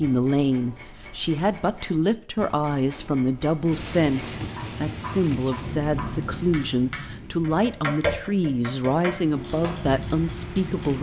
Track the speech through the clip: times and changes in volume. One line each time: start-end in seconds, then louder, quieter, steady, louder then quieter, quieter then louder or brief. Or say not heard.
0.0-10.9 steady.